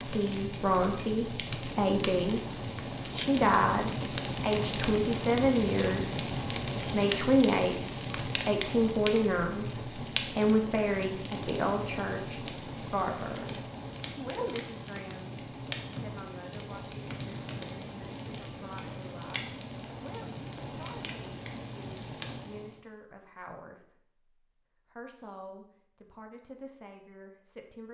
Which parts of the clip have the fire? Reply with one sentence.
The fire can be heard from 0.0 to 22.8 s.